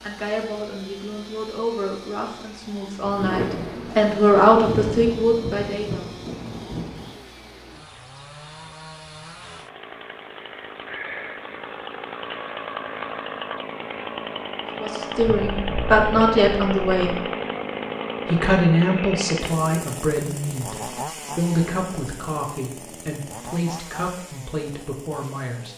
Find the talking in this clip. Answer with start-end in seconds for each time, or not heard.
0.0-6.1, 14.8-17.1, 18.2-25.7.